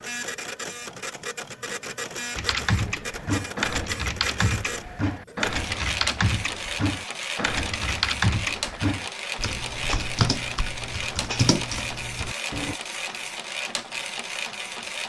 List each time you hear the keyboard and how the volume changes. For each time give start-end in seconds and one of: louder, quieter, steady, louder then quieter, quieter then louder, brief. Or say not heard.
2.4-12.8 steady.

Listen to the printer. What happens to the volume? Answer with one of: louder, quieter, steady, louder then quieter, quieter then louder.
steady.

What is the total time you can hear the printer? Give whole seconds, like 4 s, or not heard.
15 s.